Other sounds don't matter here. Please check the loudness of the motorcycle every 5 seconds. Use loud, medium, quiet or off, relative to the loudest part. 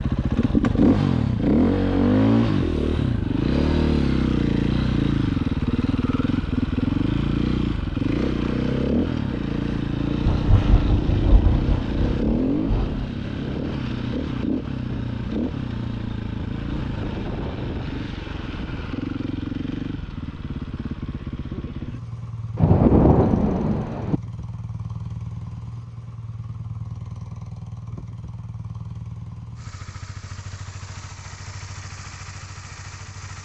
loud, loud, medium, medium, quiet, quiet, quiet.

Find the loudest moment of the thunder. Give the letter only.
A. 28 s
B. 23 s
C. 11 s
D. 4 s
B.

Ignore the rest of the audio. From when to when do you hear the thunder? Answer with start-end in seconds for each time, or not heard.
10.2-13.2, 22.6-24.2.